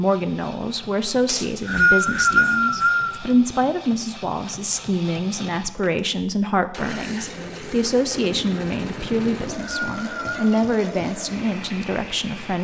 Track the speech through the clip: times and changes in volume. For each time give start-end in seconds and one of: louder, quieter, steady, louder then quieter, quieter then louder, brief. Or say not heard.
0.0-12.5 steady.